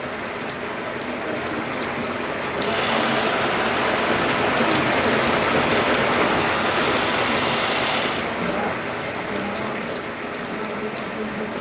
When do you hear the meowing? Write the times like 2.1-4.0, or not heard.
not heard.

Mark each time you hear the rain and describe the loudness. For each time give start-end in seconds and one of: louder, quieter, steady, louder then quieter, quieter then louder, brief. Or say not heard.
0.0-11.5 louder then quieter.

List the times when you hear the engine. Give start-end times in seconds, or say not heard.
2.5-8.3.